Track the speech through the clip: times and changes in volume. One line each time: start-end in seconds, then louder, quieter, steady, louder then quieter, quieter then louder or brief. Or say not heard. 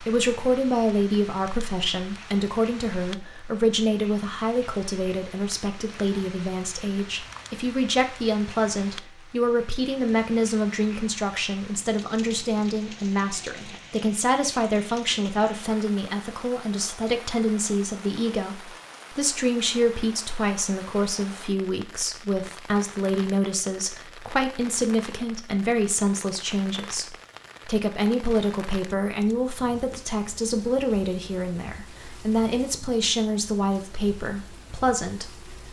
0.0-35.5 steady.